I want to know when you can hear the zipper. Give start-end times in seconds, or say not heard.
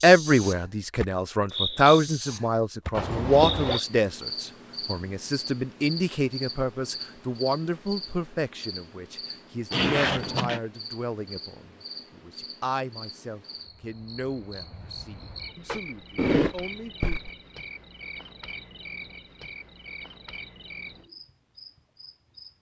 2.9-3.8, 9.7-10.6, 15.7-17.3.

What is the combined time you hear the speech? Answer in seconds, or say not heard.
17 s.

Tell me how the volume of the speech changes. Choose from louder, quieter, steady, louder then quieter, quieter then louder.
quieter.